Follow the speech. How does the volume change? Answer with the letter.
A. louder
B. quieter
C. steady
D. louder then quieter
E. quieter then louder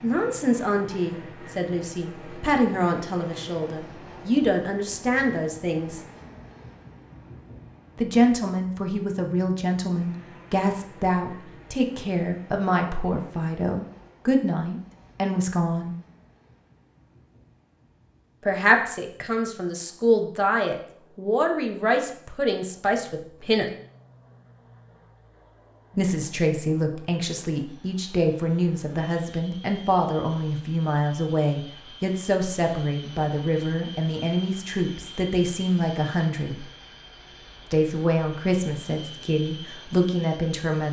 C.